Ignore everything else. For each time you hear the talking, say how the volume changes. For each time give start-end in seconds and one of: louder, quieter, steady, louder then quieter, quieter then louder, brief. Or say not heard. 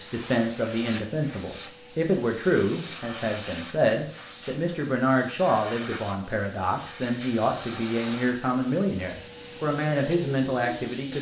0.0-11.1 steady.